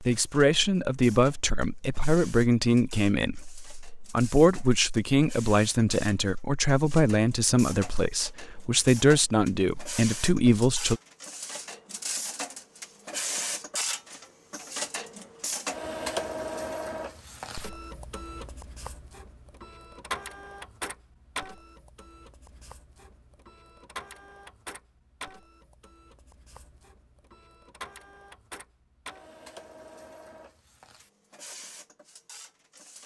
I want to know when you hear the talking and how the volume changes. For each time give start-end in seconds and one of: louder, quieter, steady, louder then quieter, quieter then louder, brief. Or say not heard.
0.0-11.0 steady.